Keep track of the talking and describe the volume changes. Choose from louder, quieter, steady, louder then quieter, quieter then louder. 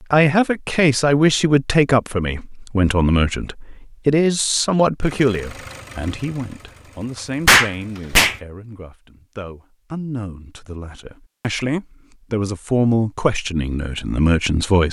quieter then louder.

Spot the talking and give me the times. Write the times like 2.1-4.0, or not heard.
0.0-14.8.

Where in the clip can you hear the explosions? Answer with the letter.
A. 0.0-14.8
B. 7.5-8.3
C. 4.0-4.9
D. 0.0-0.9
B.